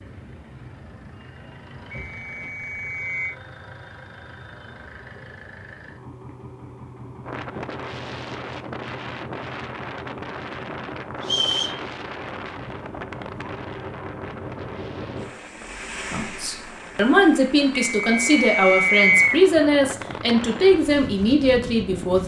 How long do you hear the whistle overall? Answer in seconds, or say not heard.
4 s.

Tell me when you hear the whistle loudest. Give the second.
19 s.